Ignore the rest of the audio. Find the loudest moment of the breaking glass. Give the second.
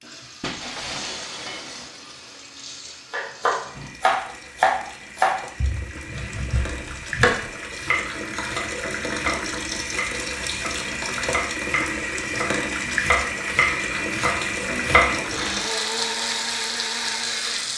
1 s.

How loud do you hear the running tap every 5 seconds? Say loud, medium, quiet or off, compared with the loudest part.
quiet, loud, loud, loud.